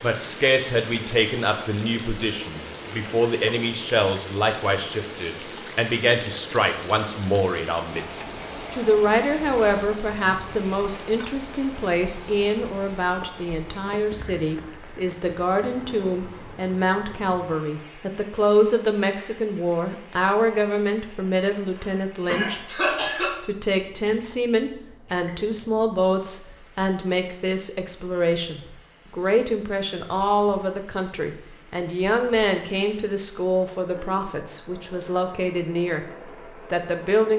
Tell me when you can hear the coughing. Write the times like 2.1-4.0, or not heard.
21.8-23.4.